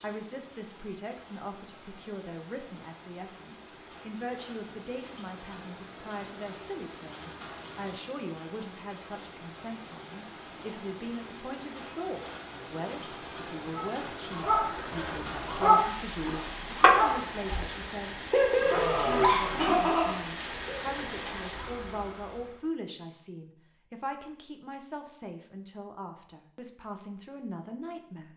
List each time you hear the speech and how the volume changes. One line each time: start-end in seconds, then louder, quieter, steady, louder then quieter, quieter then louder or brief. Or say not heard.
0.0-28.3 steady.